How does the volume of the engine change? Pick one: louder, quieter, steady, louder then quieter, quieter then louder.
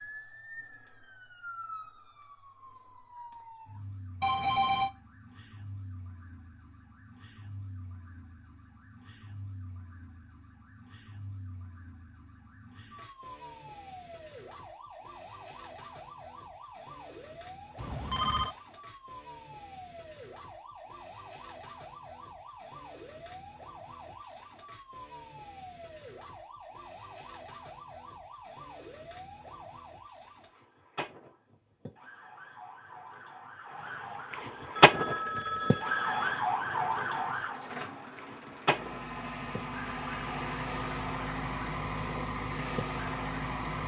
louder.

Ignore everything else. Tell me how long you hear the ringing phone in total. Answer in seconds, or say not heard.
3 s.